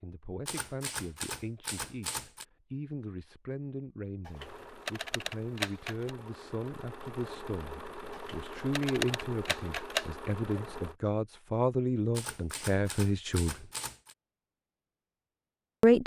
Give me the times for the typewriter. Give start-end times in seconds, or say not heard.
0.5-2.5, 4.2-6.2, 8.1-10.1, 12.1-14.2.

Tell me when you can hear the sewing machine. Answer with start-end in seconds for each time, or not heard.
4.3-10.9.